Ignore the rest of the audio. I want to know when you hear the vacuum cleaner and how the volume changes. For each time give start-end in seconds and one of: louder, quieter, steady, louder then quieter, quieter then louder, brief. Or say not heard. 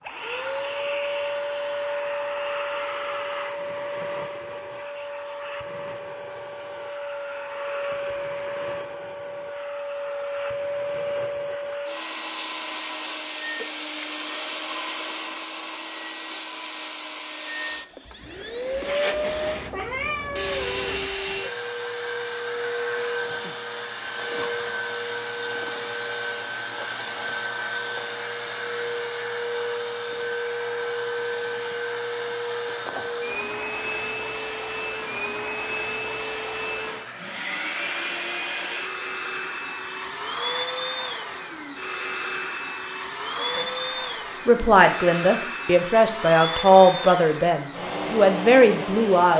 0.0-49.3 steady.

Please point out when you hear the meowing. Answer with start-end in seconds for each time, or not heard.
19.2-21.1.